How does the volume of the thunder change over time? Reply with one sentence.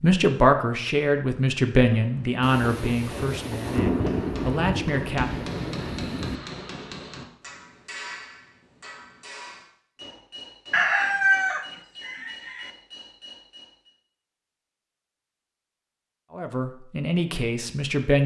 The volume of the thunder goes up, then down.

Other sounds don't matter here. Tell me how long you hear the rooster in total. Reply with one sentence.
The rooster can be heard for 2 seconds in total.